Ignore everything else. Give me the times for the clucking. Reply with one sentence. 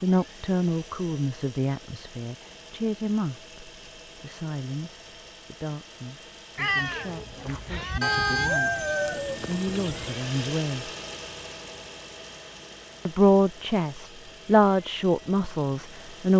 You can hear the clucking from 8.0 to 10.2 s.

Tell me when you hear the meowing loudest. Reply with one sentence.
The volume of the meowing peaks at 7 seconds.